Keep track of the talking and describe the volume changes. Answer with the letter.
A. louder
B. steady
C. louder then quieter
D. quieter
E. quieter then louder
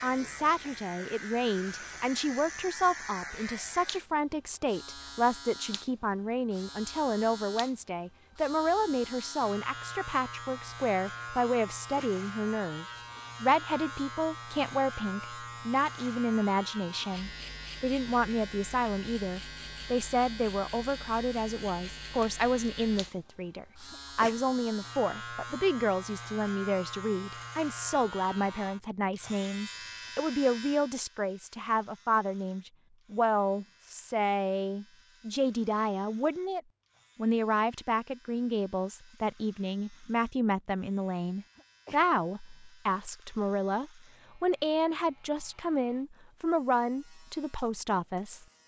B.